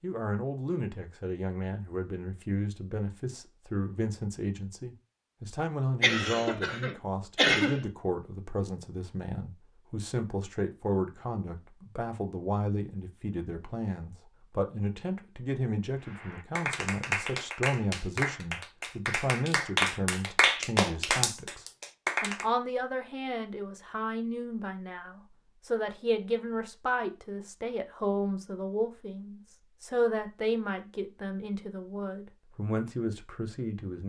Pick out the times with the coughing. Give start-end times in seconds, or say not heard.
6.0-7.8.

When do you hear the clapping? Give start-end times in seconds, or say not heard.
16.1-22.4.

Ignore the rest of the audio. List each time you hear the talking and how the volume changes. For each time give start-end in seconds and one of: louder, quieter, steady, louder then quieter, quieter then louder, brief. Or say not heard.
0.0-34.0 steady.